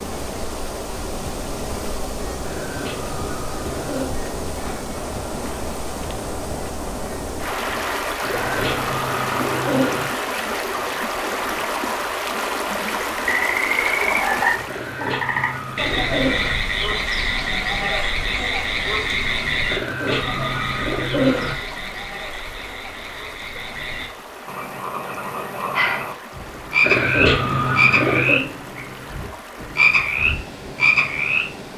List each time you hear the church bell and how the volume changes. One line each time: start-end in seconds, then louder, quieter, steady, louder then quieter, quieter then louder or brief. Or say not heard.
not heard.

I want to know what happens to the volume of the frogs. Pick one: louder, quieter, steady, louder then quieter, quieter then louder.
quieter then louder.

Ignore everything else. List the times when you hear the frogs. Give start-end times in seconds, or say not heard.
13.2-31.7.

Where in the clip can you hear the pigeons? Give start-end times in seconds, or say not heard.
2.4-4.1, 8.2-10.1, 14.7-16.6, 19.6-21.6, 26.8-28.4.